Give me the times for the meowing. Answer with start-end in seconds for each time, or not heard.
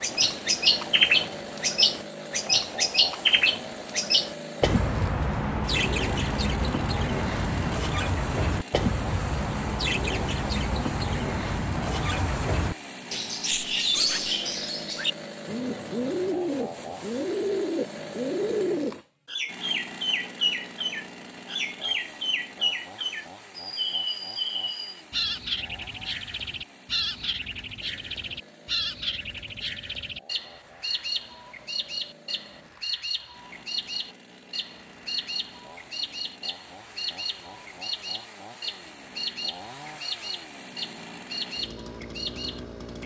not heard.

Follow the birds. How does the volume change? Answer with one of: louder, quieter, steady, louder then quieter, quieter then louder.
quieter.